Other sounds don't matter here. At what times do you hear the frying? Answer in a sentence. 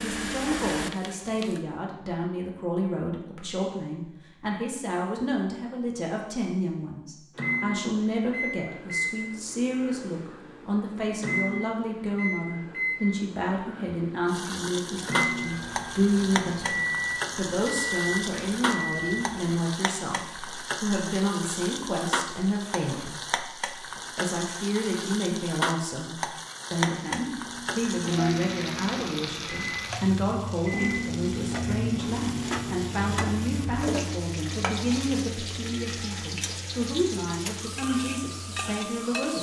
You can hear the frying from 0.0 to 1.6 s and from 14.2 to 39.3 s.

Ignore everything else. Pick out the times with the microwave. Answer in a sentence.
The microwave can be heard from 7.3 to 19.6 s and from 27.3 to 39.3 s.